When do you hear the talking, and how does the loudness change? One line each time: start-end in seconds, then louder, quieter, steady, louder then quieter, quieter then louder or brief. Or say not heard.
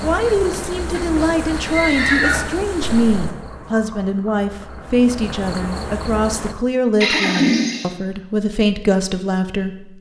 0.0-9.9 steady.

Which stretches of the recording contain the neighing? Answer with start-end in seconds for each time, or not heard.
0.9-2.5, 7.0-7.9.